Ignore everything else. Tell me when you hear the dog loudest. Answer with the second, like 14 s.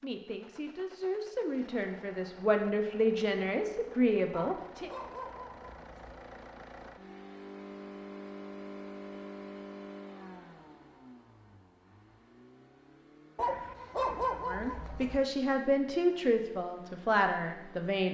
14 s.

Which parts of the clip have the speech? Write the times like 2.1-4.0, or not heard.
0.0-4.9, 14.4-18.0.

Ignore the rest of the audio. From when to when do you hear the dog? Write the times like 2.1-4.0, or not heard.
4.3-6.2, 13.3-15.2.